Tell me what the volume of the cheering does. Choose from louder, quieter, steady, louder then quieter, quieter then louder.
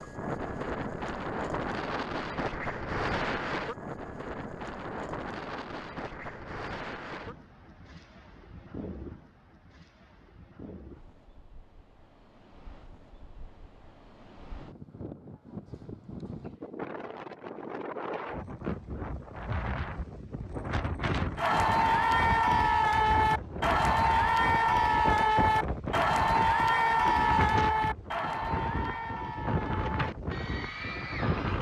quieter.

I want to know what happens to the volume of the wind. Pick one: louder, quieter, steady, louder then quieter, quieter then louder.
quieter then louder.